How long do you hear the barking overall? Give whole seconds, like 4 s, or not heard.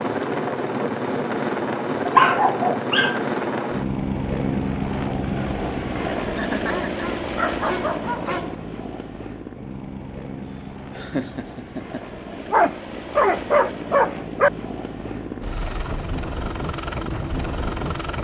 5 s.